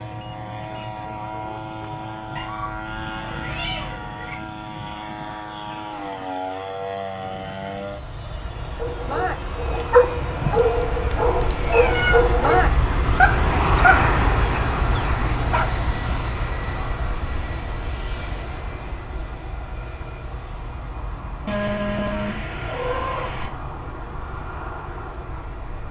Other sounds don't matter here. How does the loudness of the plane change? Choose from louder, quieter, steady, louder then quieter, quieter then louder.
louder then quieter.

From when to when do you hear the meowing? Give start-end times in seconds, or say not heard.
2.4-4.3, 11.7-12.7, 21.4-23.5.